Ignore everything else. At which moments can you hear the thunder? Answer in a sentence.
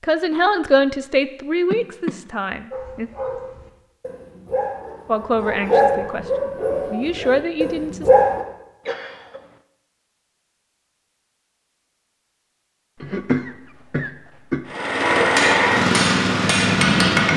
You can't hear the thunder here.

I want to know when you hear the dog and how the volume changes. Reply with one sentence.
The dog can be heard from 2.7 to 8.4 s, getting louder then quieter.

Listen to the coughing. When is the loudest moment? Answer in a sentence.
The volume of the coughing peaks at 13 seconds.